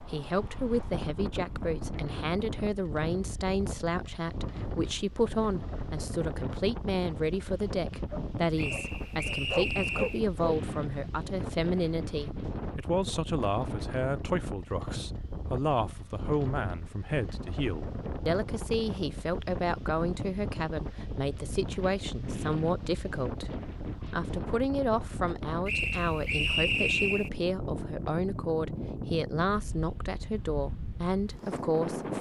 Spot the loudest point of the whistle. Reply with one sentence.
The volume of the whistle peaks at 27 seconds.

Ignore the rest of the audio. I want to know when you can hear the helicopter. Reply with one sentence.
The helicopter can't be heard in this clip.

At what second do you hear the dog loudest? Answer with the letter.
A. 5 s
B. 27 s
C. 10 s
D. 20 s
C.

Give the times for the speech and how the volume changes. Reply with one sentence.
You can hear the speech from 0.0 to 32.1 s, at a steady volume.